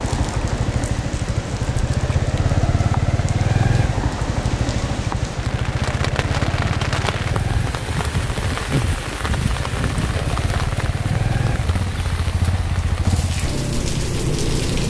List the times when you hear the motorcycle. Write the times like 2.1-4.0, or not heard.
0.0-14.8.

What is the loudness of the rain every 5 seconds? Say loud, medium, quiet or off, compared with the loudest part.
medium, loud, medium.